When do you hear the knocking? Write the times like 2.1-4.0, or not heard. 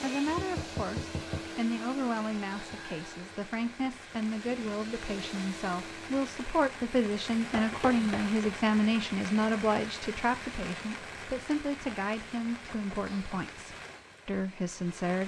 0.2-1.5, 7.5-8.3, 12.7-13.6.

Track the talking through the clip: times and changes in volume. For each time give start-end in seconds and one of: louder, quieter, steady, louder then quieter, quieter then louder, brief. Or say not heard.
0.0-15.2 louder then quieter.